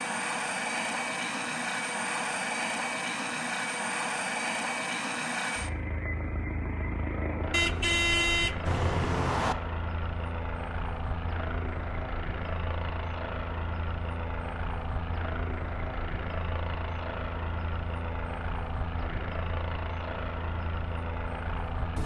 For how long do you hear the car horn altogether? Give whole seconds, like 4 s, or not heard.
2 s.